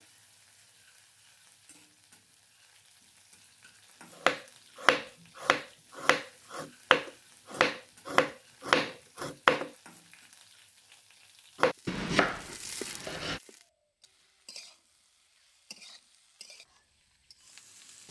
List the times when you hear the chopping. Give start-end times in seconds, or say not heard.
4.2-9.7, 11.6-13.4.